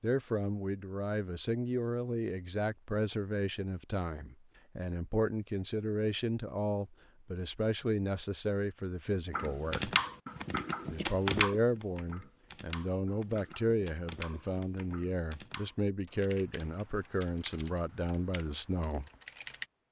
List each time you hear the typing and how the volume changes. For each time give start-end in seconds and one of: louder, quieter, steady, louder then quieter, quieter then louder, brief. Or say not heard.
9.3-19.6 quieter.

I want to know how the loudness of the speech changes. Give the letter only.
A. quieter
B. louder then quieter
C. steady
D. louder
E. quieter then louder
C.